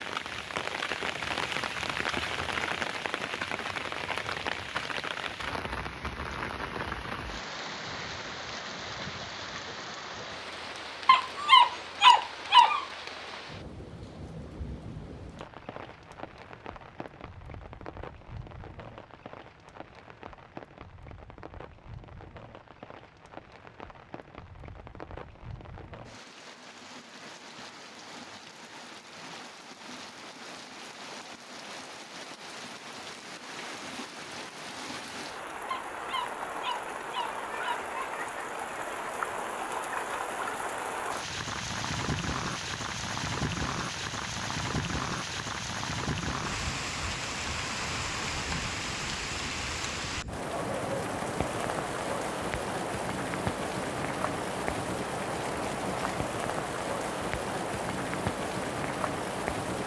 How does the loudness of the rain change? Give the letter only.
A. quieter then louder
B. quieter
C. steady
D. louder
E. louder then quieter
A.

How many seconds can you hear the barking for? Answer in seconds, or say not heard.
4 s.